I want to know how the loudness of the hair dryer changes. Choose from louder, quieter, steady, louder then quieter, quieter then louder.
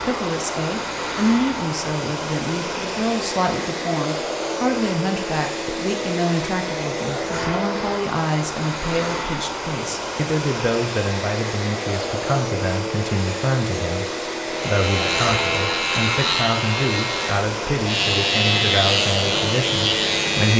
steady.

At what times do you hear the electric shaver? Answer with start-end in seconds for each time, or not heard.
14.5-20.5.